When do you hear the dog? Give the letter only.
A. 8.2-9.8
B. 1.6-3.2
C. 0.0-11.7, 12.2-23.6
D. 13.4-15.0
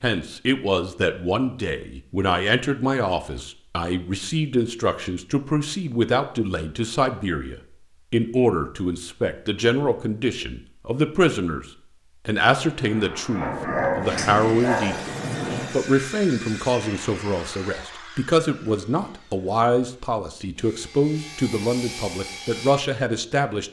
D.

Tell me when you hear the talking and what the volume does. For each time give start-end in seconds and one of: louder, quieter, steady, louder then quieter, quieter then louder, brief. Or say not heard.
0.0-11.7 steady
12.2-23.6 steady.